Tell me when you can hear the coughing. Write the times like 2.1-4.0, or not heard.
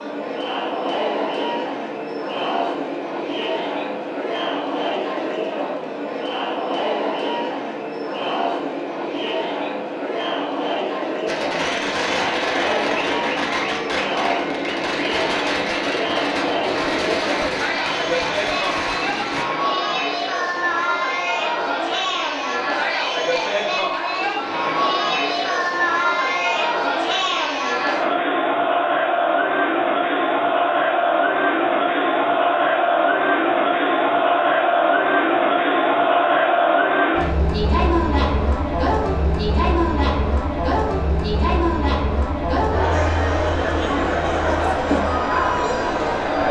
not heard.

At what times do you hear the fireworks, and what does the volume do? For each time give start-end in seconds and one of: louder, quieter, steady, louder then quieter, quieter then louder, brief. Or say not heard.
11.2-19.4 steady.